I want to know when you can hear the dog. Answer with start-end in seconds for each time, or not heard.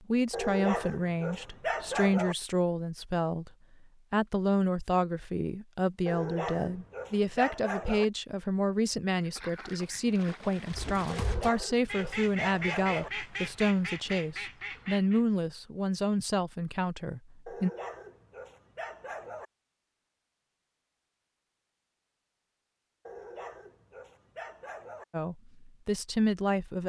0.3-2.4, 6.0-8.1, 11.1-13.1, 17.4-19.4, 23.1-25.1.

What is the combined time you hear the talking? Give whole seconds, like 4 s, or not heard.
19 s.